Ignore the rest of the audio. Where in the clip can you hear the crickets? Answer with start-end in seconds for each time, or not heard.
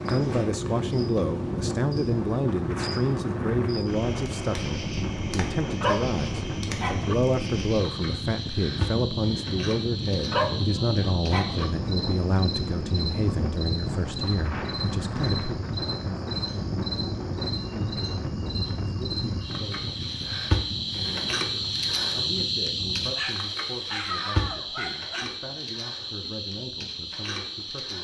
0.0-28.0.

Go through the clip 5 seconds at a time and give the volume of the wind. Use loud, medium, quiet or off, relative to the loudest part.
loud, loud, loud, loud, medium, off.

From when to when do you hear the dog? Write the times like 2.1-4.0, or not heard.
5.8-7.2, 10.3-11.7, 23.1-25.2.